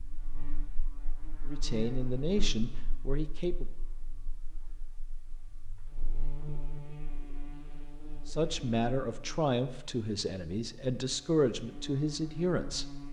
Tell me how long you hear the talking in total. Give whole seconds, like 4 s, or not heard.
7 s.